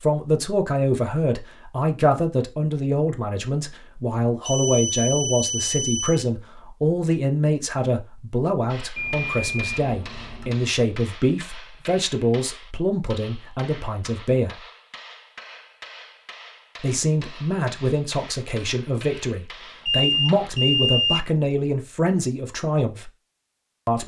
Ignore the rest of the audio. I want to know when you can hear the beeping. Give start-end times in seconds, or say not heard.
4.5-6.2, 8.9-10.7, 19.9-21.2.